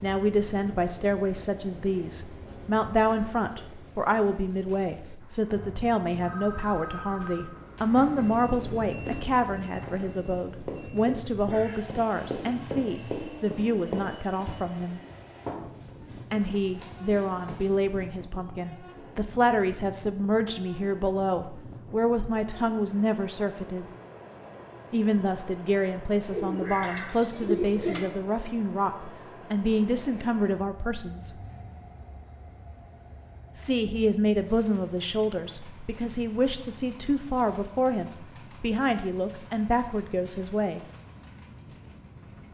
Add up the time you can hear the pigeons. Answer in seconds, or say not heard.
4 s.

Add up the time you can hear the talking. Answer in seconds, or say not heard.
36 s.